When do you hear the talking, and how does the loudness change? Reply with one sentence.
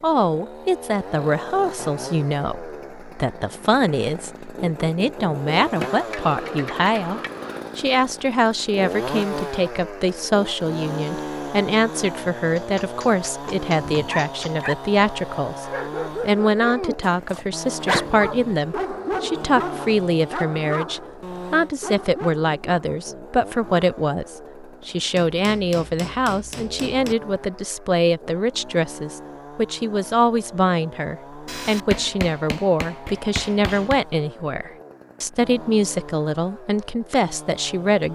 The talking can be heard from 0.0 to 38.1 s, at a steady volume.